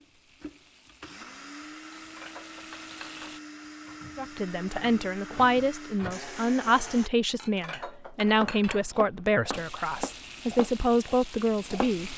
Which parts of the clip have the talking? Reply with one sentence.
You can hear the talking from 4.2 to 12.1 s.